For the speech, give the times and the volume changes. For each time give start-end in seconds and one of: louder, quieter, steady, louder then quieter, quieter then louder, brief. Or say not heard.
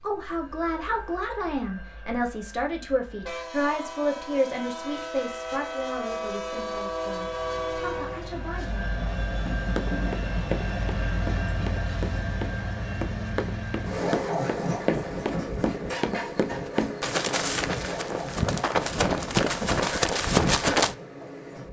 0.0-8.9 quieter.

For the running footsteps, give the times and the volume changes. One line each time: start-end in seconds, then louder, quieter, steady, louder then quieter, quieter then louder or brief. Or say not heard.
9.7-20.9 louder.